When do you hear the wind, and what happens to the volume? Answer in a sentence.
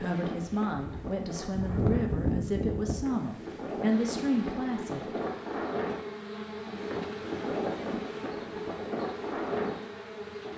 The wind can be heard from 0.0 to 10.5 s, getting louder.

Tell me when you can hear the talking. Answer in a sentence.
The talking can be heard from 0.0 to 5.1 s.